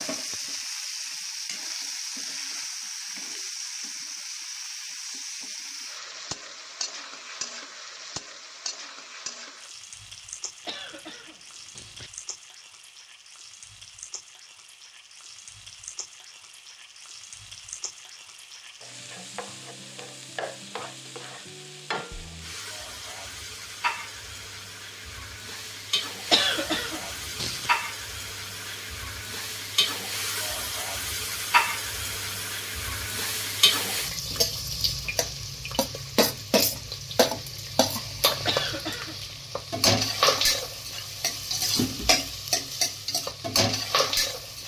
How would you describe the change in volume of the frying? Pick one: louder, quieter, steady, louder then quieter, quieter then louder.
quieter then louder.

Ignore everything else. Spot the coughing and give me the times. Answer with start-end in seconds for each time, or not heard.
10.7-12.1, 26.3-27.7, 38.5-39.1.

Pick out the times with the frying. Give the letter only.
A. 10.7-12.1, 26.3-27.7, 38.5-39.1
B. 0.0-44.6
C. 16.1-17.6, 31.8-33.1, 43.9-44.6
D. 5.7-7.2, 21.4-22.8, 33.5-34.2
B.